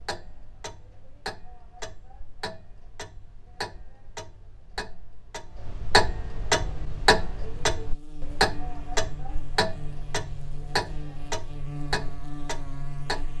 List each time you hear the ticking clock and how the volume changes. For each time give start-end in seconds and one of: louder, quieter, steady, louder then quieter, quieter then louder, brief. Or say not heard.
0.0-13.3 louder then quieter.